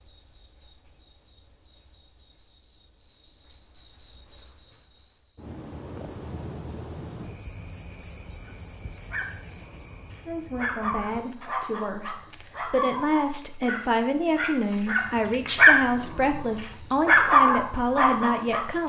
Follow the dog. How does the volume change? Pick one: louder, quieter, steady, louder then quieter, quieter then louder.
louder.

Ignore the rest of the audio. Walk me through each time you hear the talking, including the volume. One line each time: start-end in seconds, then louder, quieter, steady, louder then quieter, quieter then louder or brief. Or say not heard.
10.2-18.8 louder.